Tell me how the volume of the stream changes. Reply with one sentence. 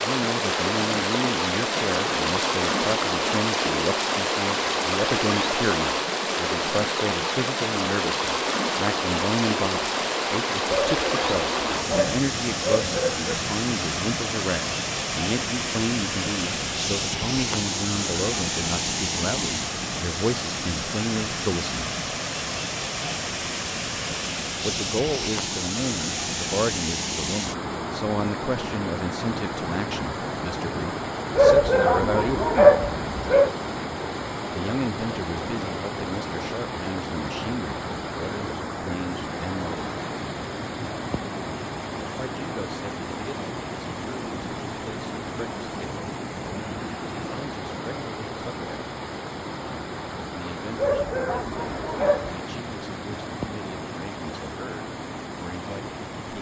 The volume of the stream goes down.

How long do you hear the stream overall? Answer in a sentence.
The stream can be heard for 56 seconds in total.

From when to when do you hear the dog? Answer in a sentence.
You can hear the dog from 10.7 to 13.3 s, from 31.4 to 33.5 s and from 50.8 to 52.4 s.